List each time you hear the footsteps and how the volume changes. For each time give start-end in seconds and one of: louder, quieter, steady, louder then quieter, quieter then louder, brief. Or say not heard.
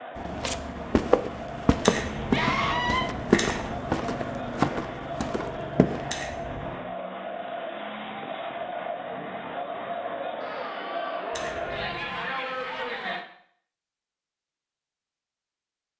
0.1-6.2 quieter.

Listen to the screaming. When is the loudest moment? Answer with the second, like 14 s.
3 s.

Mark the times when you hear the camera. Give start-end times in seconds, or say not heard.
1.8-3.8, 6.0-6.8, 11.3-12.2.